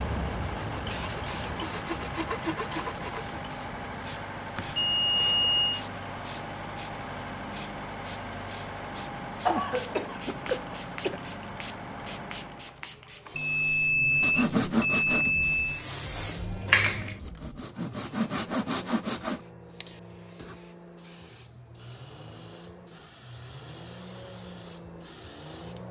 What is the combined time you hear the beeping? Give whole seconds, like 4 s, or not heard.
4 s.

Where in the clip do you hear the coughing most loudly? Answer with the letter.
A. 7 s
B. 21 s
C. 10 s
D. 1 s
C.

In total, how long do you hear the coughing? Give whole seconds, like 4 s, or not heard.
2 s.